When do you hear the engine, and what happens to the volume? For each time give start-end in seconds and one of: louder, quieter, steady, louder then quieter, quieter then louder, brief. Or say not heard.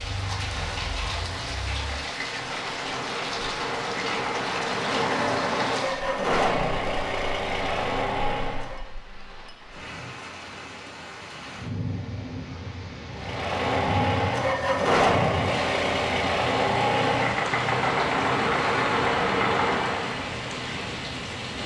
0.0-8.8 louder
13.2-20.2 steady.